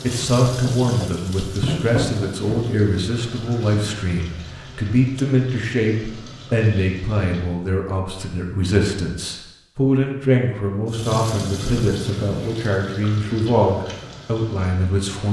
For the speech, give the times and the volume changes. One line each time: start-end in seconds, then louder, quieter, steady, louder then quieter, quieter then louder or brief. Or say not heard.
0.0-15.2 steady.